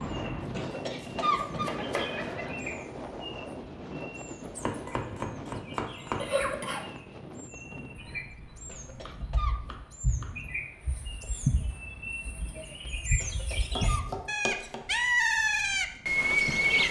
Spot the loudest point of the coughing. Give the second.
1 s.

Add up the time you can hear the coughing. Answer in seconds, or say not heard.
4 s.